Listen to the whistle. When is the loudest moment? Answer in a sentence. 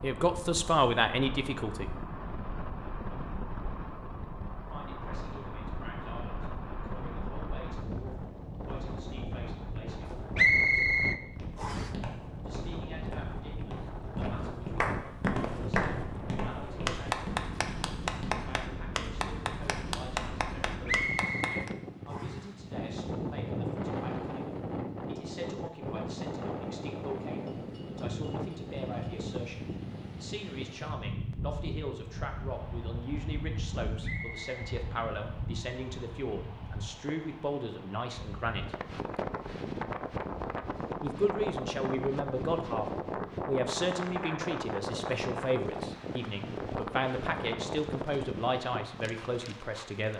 The loudest moment of the whistle is at 11 seconds.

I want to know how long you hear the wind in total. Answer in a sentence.
You can hear the wind for 50 seconds altogether.